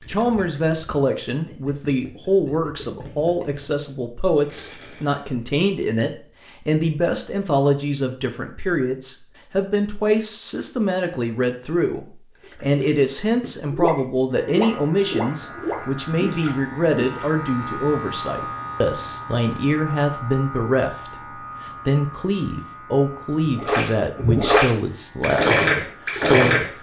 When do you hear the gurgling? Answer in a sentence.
The gurgling can be heard from 0.0 to 5.2 s, from 12.3 to 17.3 s and from 23.4 to 26.6 s.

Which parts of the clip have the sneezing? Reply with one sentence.
The sneezing can't be heard in this clip.